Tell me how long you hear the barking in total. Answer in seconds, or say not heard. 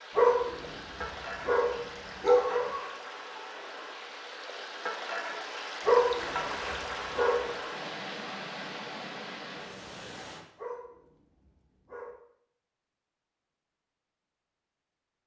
6 s.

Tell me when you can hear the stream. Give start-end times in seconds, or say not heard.
0.0-10.4.